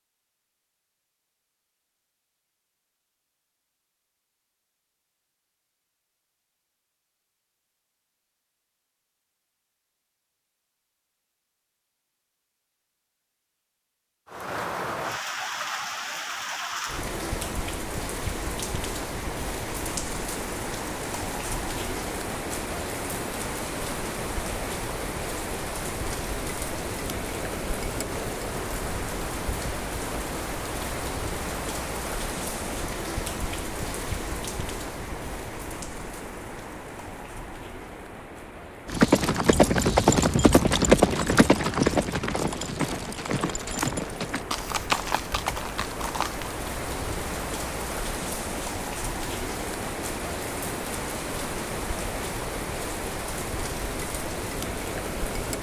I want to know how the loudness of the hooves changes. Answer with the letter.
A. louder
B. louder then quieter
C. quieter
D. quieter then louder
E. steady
C.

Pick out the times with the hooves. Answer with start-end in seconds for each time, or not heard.
38.9-46.5.